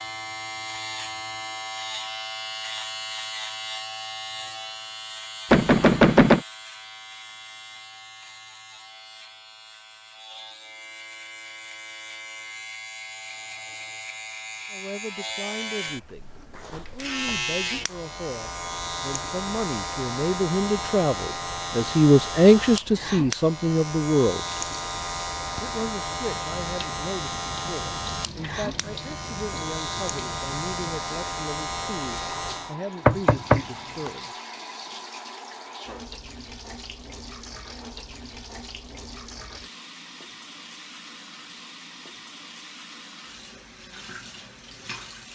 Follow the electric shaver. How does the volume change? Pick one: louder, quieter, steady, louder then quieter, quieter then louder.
quieter then louder.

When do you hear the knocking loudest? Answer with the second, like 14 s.
6 s.